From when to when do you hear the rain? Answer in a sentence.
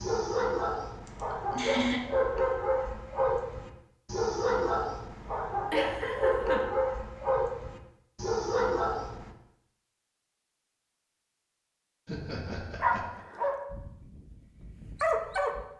You can't hear the rain here.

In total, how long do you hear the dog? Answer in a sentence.
You can hear the dog for 12 seconds altogether.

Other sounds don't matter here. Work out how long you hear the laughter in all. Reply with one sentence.
The laughter can be heard for 3 seconds in total.